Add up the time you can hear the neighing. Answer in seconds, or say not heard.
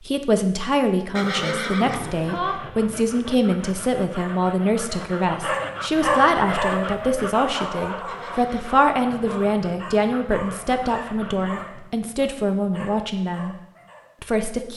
3 s.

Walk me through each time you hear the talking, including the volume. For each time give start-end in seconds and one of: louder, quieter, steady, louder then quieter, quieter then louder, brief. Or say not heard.
0.1-13.6 steady
14.2-14.7 brief.